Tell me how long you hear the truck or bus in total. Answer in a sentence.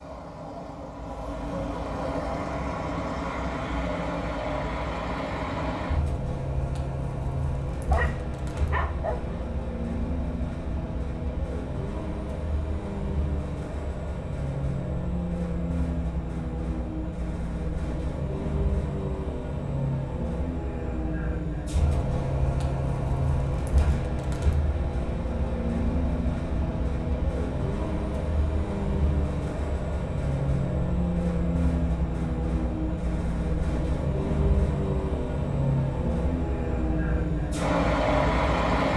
You can hear the truck or bus for 39 seconds altogether.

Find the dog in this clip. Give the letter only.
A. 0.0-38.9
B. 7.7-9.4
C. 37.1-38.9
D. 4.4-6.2
B.